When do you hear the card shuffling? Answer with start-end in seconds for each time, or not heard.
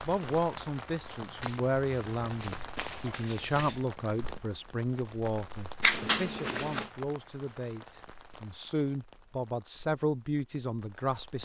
1.4-3.9, 5.8-6.9.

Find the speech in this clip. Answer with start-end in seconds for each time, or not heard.
0.1-11.4.